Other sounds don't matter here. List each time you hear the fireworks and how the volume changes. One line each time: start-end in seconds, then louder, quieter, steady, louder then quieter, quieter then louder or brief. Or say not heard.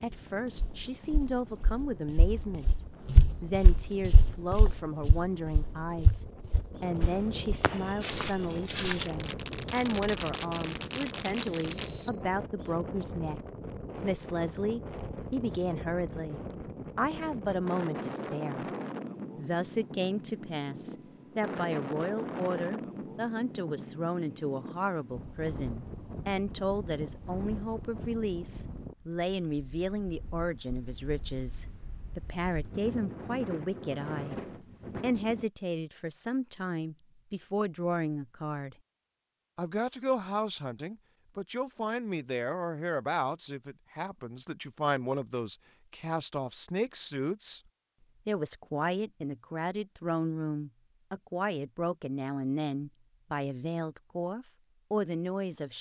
7.0-11.9 quieter then louder.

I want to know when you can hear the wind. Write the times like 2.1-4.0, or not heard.
0.0-35.5.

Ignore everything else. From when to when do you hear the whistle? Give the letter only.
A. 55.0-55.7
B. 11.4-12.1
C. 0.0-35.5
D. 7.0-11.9
B.